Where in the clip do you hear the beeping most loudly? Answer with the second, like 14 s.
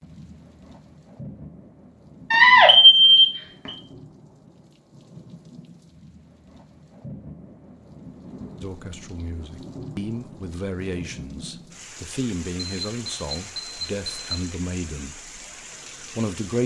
3 s.